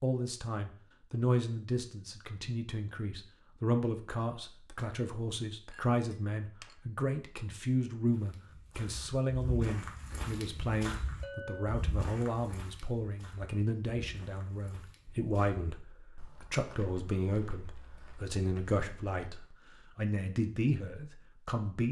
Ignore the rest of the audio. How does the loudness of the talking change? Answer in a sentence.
The loudness of the talking stays about the same.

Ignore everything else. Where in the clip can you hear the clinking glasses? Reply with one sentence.
The clinking glasses can be heard from 5.7 to 6.8 s and from 11.2 to 11.8 s.